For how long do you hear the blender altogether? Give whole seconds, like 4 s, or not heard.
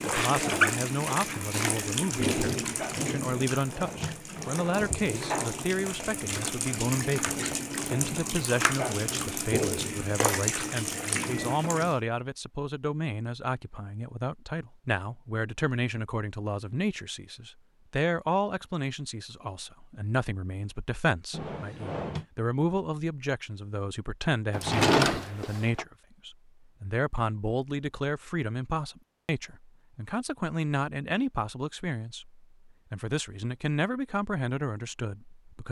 not heard.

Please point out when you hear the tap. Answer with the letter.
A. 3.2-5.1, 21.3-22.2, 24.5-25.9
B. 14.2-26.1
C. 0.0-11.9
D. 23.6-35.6
C.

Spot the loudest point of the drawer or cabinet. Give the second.
25 s.